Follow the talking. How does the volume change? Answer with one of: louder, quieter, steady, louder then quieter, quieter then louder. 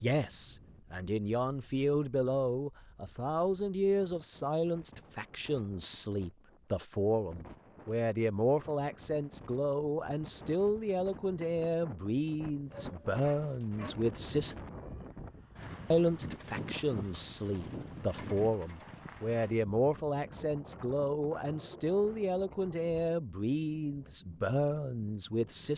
steady.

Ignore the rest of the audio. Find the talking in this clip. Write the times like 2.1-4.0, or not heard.
0.0-14.6, 15.9-25.7.